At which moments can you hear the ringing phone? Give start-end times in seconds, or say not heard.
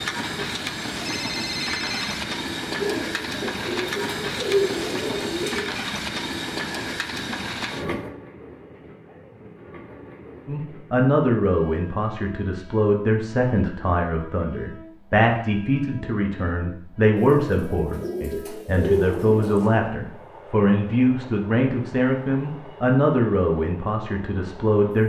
1.1-2.2.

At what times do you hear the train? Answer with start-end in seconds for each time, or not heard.
0.0-25.0.